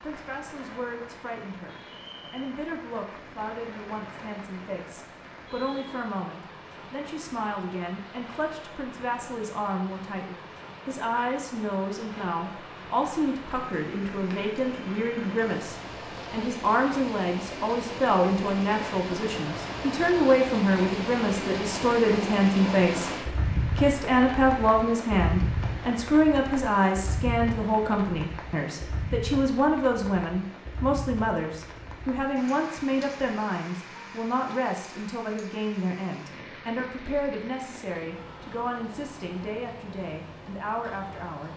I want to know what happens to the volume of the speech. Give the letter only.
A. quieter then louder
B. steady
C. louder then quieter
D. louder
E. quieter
C.